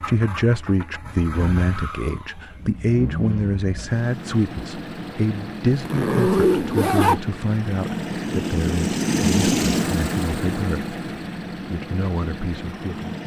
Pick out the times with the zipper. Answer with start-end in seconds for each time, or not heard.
5.7-7.2.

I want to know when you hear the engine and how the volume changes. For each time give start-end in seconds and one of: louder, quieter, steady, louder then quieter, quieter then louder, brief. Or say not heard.
0.0-13.2 louder then quieter.